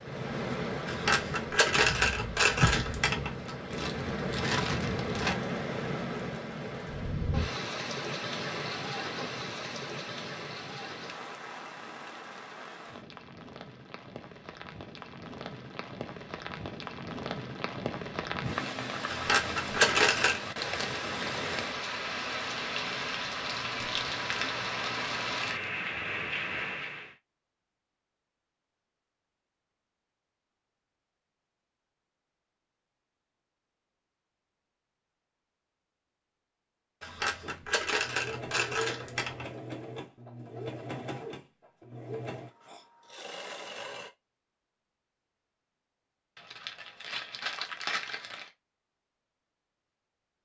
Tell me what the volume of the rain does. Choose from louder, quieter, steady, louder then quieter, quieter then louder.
quieter then louder.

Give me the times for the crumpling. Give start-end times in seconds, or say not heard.
3.7-5.3, 23.6-25.7, 46.4-48.5.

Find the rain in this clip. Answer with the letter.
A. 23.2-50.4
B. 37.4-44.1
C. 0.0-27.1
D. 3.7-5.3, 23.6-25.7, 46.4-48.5
C.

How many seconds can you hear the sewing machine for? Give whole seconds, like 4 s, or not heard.
7 s.